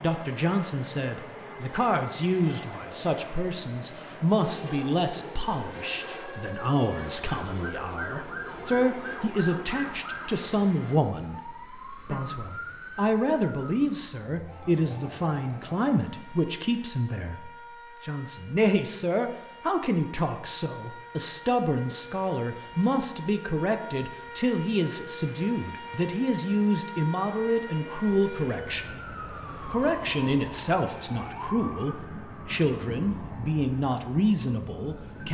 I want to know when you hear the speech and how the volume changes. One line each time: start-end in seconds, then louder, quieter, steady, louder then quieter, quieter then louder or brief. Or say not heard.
0.0-35.2 steady.